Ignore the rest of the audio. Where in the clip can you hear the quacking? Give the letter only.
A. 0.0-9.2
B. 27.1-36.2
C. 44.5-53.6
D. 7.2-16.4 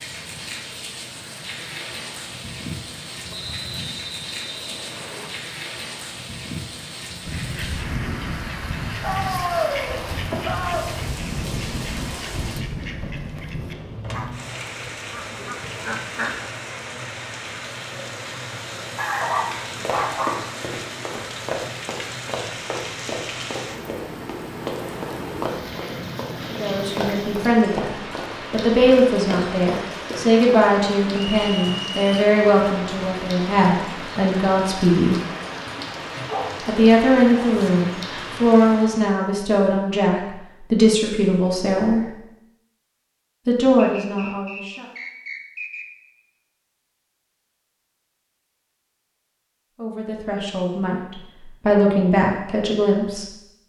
D.